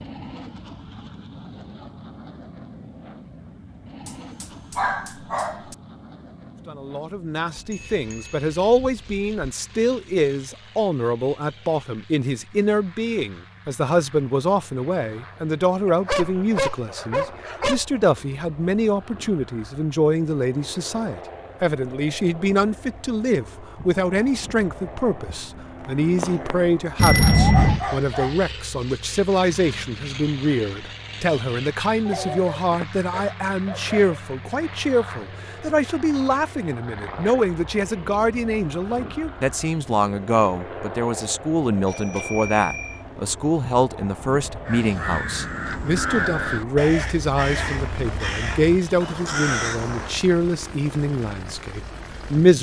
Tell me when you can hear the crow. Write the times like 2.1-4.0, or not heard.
44.6-50.1.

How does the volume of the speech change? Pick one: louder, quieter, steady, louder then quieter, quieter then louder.
steady.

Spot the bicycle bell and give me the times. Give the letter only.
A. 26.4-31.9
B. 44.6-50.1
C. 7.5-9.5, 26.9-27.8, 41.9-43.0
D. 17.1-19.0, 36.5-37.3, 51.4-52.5
C.